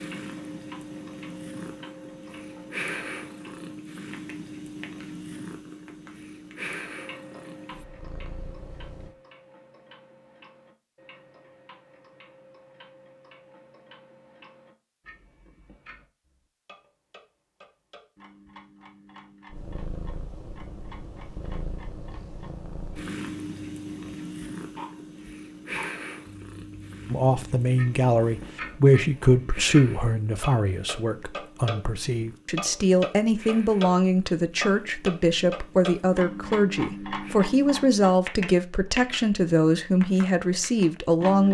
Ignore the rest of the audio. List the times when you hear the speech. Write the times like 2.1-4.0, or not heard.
27.1-41.4.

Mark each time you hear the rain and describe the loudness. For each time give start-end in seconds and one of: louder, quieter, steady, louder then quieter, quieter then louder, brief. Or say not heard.
not heard.